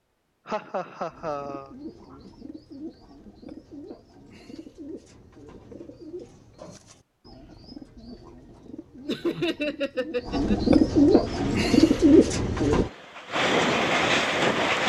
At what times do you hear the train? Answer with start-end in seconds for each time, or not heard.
11.2-14.8.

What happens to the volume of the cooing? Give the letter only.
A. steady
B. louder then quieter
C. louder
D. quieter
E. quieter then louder
C.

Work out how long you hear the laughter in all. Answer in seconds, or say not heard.
3 s.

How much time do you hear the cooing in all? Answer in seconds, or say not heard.
12 s.